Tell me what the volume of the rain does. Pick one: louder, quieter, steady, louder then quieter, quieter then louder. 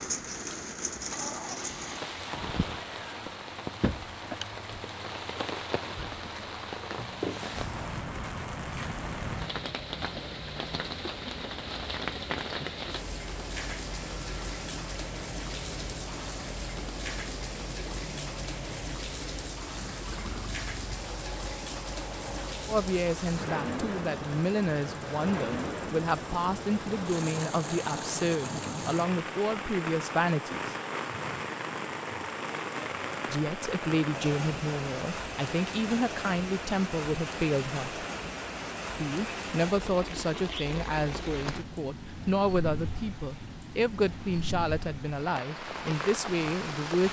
steady.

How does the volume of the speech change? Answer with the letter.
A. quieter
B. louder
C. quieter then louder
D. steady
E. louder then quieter
D.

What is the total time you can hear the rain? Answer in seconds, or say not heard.
47 s.